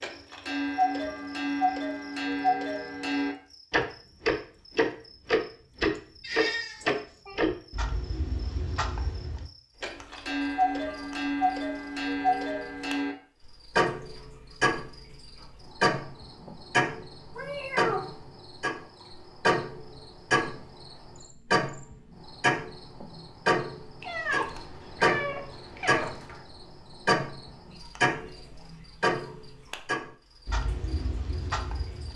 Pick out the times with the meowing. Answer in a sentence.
You can hear the meowing from 6.0 to 7.3 s, from 17.4 to 18.1 s and from 24.0 to 26.4 s.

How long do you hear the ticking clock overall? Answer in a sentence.
The ticking clock can be heard for 32 seconds in total.